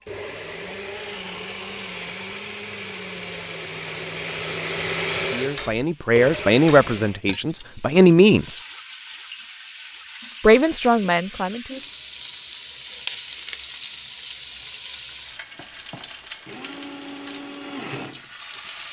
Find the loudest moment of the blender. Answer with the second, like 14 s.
5 s.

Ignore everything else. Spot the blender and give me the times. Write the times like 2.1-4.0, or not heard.
0.0-7.2, 16.2-18.7.